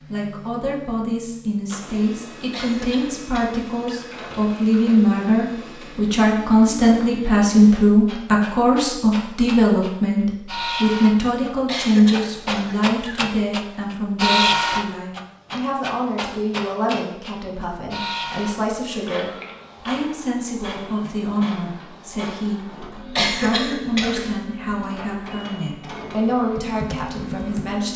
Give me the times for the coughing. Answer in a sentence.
The coughing can be heard from 2.5 to 4.1 s, from 11.7 to 13.3 s and from 23.1 to 24.3 s.